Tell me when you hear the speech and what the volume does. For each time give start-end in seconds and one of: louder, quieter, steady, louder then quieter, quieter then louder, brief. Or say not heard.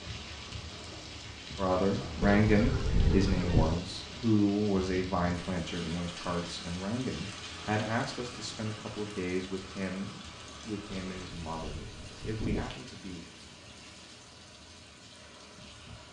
1.6-13.2 quieter.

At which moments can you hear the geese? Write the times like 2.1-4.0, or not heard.
2.2-3.8, 11.1-12.8.